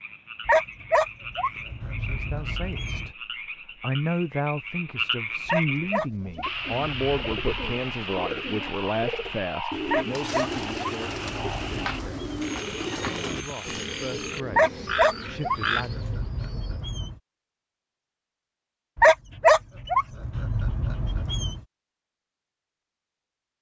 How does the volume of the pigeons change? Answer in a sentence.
The volume of the pigeons goes up, then down.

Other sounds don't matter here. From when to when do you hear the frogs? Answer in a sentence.
You can hear the frogs from 0.0 to 15.8 s.